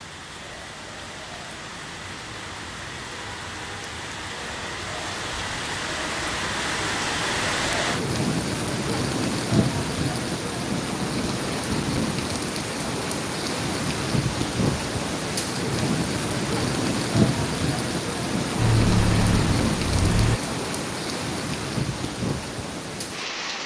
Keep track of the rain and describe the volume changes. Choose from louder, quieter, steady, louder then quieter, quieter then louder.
louder.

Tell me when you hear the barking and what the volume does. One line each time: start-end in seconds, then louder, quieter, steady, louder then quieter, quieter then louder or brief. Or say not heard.
not heard.